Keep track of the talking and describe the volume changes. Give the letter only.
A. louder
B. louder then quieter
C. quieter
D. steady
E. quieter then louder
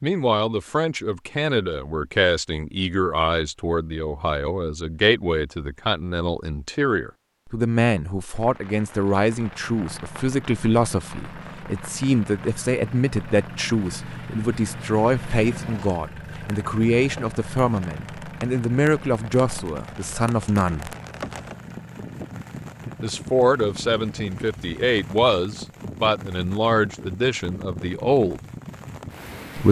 D.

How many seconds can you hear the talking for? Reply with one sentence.
The talking can be heard for 26 seconds in total.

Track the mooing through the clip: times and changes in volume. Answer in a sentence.
You can't hear the mooing here.